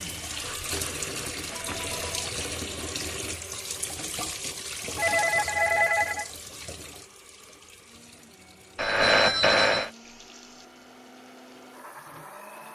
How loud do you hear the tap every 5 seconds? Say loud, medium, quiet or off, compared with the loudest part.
loud, medium, quiet.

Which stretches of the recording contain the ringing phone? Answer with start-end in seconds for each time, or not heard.
0.1-2.3, 5.0-6.3, 8.8-9.9.